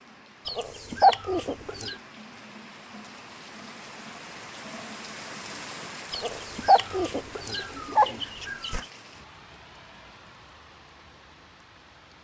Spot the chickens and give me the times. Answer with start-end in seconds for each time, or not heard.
0.5-1.9, 6.1-8.8.